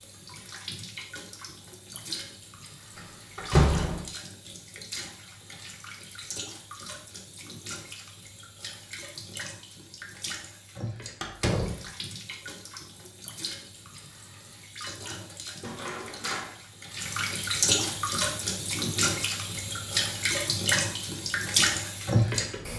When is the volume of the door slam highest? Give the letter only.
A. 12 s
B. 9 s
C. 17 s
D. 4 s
D.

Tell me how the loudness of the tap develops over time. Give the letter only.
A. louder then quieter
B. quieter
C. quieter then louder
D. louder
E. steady
D.